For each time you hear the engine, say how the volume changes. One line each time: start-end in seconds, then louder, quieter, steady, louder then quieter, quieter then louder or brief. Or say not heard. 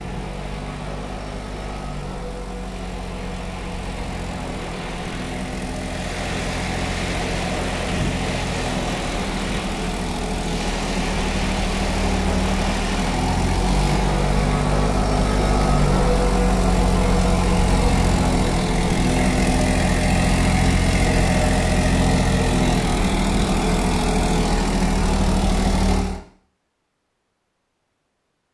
0.0-26.2 louder.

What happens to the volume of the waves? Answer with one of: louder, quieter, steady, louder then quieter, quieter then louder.
louder.